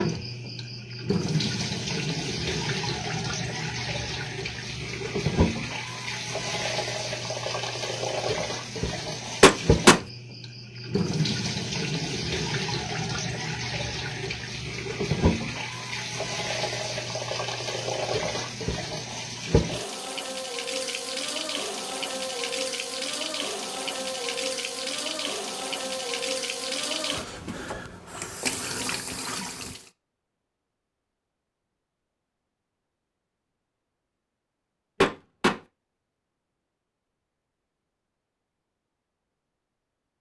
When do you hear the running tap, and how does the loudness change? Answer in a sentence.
You can hear the running tap from 0.0 to 29.9 s, at a steady volume.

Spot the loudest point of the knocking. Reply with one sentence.
The volume of the knocking peaks at 10 seconds.